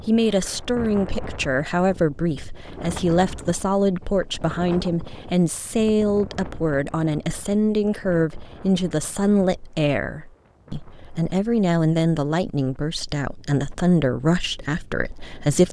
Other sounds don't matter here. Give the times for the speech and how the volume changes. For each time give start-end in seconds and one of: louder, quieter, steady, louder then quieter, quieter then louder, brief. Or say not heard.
0.0-15.6 steady.